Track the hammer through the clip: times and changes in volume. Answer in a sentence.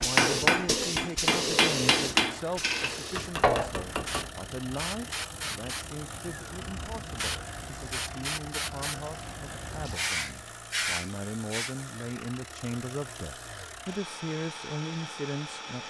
The hammer can be heard from 0.0 to 4.3 s, getting quieter.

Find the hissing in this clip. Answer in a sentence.
You can hear the hissing from 0.0 to 11.8 s.